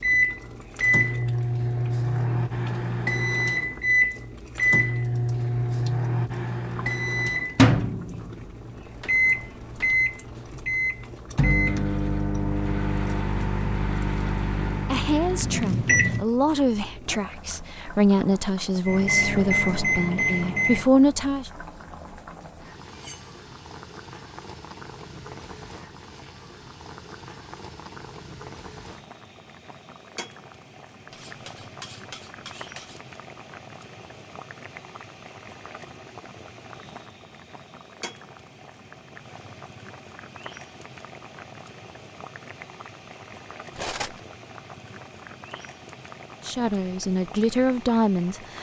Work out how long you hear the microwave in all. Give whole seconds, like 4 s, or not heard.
18 s.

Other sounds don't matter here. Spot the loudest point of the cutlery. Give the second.
44 s.